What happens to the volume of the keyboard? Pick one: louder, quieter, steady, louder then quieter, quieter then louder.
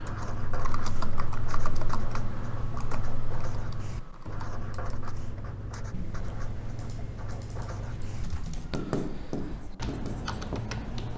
quieter then louder.